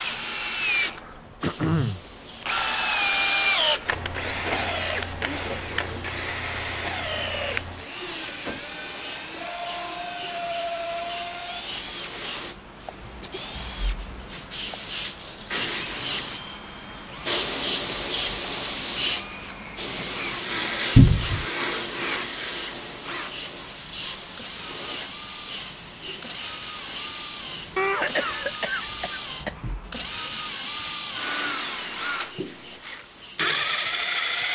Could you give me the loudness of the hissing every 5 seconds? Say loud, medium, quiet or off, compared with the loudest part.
quiet, quiet, medium, loud, loud, quiet, quiet.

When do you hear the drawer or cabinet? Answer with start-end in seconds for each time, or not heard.
20.9-21.4.